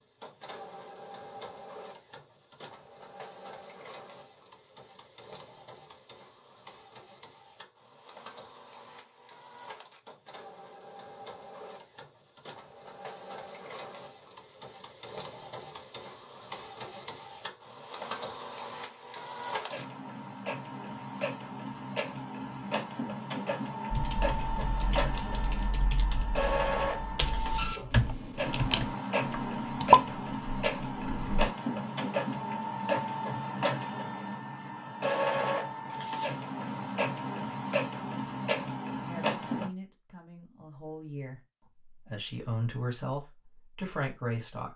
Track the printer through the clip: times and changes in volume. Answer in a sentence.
The printer can be heard from 0.0 to 39.7 s, getting louder.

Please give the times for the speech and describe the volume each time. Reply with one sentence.
The speech can be heard from 39.0 to 44.7 s, getting louder.